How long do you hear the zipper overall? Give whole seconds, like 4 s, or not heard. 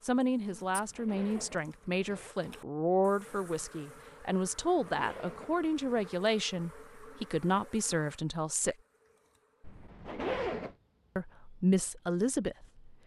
4 s.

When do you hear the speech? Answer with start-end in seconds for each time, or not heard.
0.0-8.8, 11.2-12.8.